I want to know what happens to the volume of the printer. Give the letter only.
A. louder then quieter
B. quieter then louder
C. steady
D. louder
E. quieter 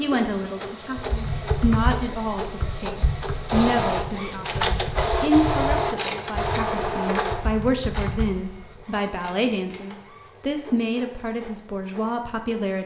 A.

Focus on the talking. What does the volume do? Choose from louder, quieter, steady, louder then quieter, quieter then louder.
steady.